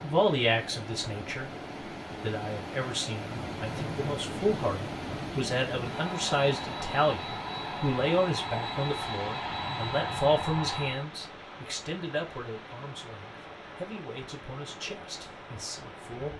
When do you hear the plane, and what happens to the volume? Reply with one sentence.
The plane can be heard from 3.2 to 11.1 s, getting louder.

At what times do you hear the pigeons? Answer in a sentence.
The pigeons can't be heard in this clip.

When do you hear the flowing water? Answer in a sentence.
You can hear the flowing water from 0.0 to 16.3 s.